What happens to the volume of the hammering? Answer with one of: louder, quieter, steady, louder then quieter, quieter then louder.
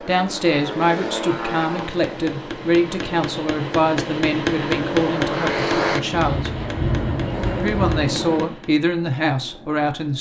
louder then quieter.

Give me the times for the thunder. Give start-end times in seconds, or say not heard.
6.1-8.1.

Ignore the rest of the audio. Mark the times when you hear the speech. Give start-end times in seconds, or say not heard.
0.1-6.5, 7.6-10.1.